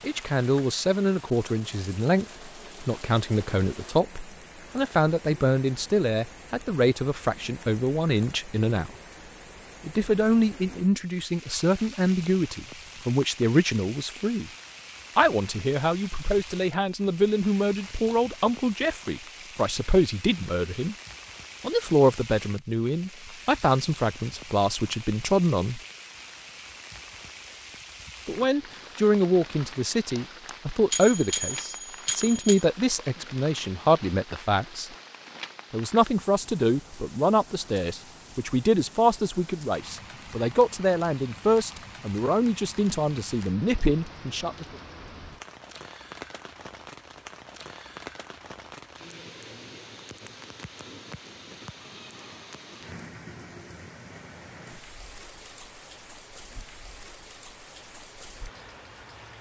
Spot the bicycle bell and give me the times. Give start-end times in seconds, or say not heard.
30.1-32.6.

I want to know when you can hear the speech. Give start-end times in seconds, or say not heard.
0.0-8.9, 9.8-14.5, 15.2-20.9, 21.6-25.8, 28.2-34.9, 35.7-44.6.